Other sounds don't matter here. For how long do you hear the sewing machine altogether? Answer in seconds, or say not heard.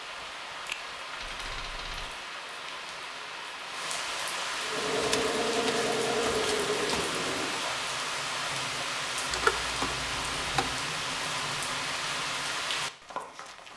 3 s.